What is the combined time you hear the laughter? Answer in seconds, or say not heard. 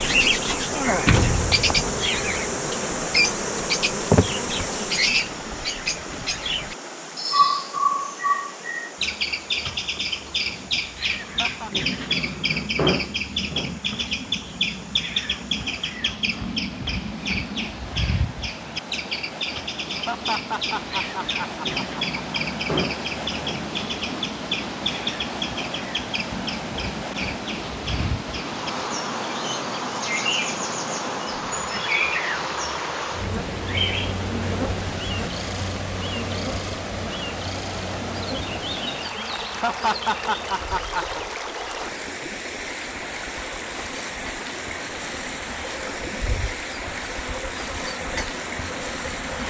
5 s.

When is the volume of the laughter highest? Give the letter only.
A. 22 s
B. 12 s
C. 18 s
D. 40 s
D.